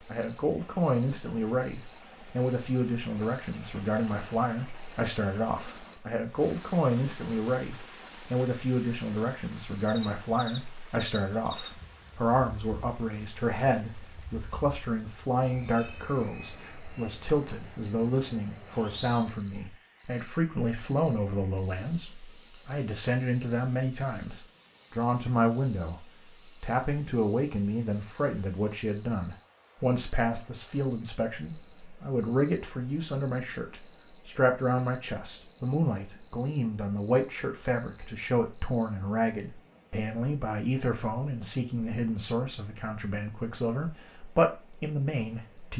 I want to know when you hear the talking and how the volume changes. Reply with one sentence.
The talking can be heard from 0.1 to 45.7 s, at a steady volume.